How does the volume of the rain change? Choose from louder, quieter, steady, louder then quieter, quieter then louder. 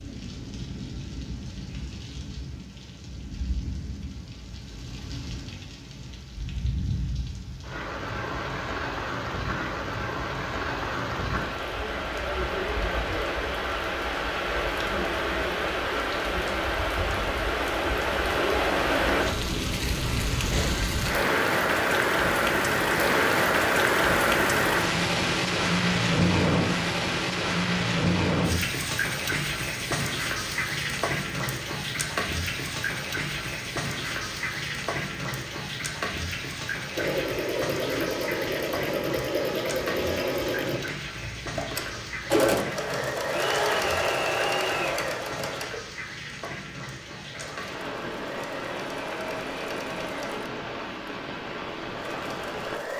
louder then quieter.